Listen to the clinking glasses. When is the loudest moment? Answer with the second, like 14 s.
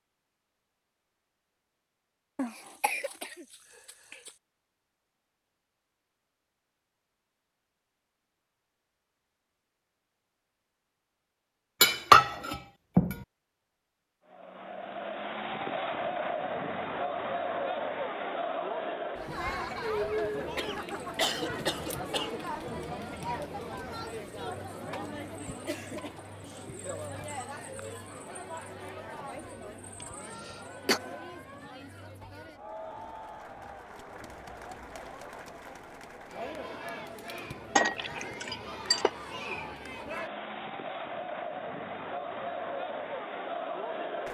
12 s.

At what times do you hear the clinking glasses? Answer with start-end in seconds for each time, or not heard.
11.8-13.2, 37.8-39.1.